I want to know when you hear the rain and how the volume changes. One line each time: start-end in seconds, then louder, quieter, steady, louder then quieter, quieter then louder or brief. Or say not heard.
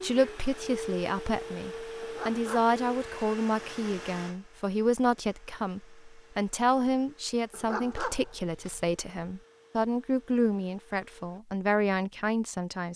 not heard.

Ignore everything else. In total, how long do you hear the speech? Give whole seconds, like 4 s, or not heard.
13 s.